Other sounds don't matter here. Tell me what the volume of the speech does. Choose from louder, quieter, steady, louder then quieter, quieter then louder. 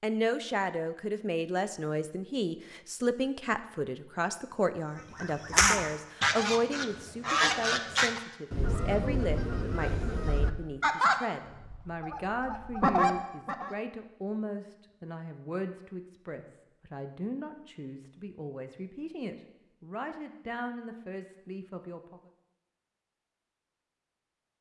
quieter.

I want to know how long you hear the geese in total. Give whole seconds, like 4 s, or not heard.
9 s.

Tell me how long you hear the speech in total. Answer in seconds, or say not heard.
22 s.